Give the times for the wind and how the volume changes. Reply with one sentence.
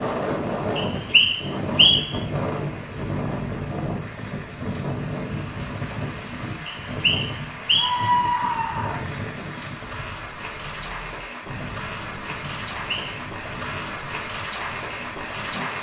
The wind can be heard from 0.0 to 15.7 s, getting quieter.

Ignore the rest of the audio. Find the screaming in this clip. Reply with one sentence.
You can hear the screaming from 7.8 to 9.1 s.